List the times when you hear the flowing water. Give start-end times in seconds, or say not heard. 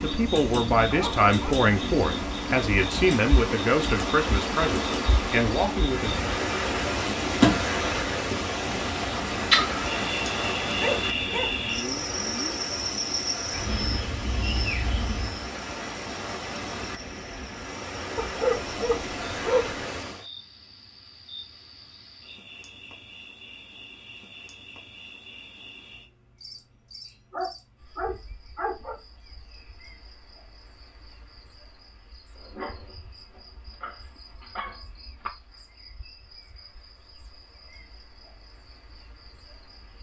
0.0-20.2.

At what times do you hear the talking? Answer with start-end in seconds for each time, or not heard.
0.0-6.1.